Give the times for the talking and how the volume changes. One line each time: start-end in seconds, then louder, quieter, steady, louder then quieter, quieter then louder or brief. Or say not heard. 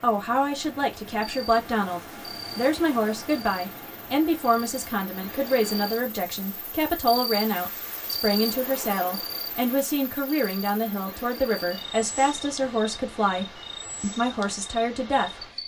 0.0-15.4 steady.